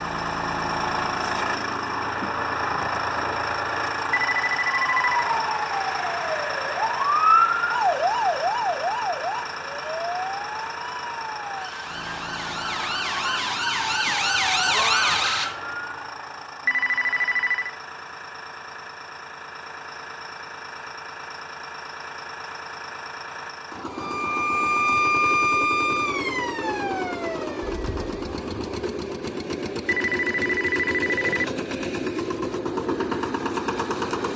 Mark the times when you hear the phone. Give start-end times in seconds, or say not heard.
4.1-5.2, 16.6-17.8, 29.9-31.4.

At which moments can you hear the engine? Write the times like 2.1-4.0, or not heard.
0.0-34.3.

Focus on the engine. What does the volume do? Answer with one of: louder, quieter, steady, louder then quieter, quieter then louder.
quieter then louder.